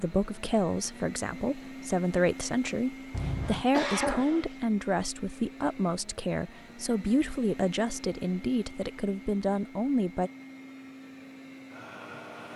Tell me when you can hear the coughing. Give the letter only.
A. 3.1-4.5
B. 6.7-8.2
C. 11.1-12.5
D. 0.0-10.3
A.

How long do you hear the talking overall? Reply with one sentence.
You can hear the talking for 10 seconds altogether.